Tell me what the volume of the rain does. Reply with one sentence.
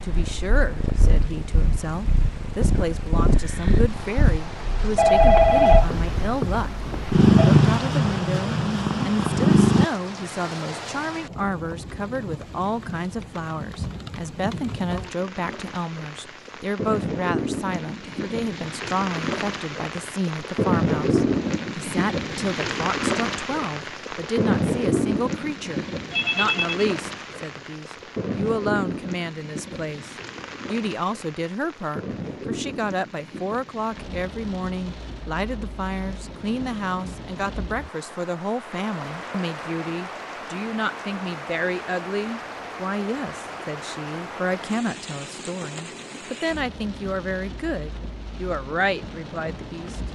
The volume of the rain goes up, then down.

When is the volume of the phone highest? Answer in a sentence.
The volume of the phone peaks at 5 seconds.